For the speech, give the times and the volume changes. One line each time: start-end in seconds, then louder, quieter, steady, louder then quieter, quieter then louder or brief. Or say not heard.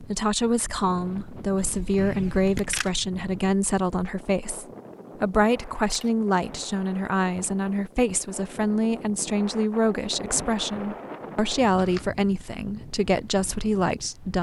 0.0-14.3 steady.